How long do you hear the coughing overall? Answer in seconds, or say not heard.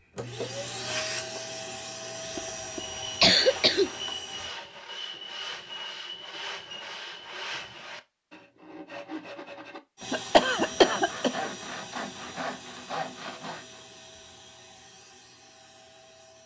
3 s.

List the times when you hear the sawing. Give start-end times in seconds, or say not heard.
2.7-13.8.